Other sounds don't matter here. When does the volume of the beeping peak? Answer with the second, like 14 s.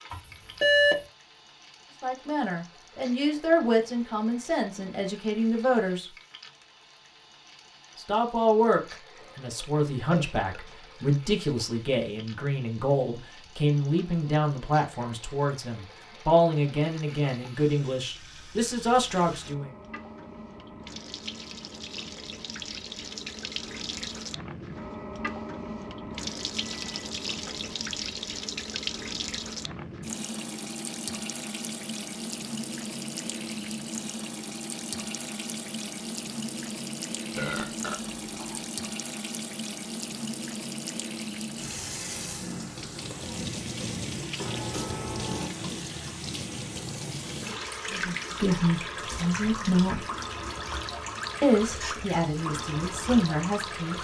1 s.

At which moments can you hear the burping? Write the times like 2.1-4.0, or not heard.
9.1-10.8, 37.4-38.6.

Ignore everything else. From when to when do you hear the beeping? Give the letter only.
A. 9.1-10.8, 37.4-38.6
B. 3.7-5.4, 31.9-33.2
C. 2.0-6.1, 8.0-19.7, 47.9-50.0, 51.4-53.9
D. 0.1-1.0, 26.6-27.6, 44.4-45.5
D.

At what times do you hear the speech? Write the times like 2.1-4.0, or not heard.
2.0-6.1, 8.0-19.7, 47.9-50.0, 51.4-53.9.